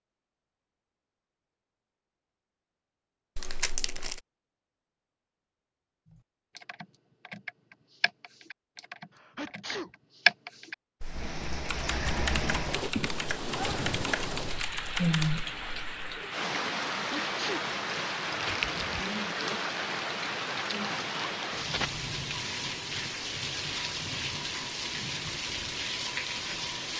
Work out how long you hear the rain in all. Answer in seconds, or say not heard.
16 s.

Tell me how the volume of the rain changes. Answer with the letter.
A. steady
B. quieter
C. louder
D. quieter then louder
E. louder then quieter
A.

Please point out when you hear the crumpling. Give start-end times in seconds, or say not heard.
3.4-4.2, 18.3-19.1.